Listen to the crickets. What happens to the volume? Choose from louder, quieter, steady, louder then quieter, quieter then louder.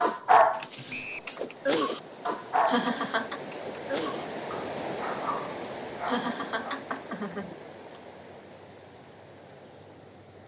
louder.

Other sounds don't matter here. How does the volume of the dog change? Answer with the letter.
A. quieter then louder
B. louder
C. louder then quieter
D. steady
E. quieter
E.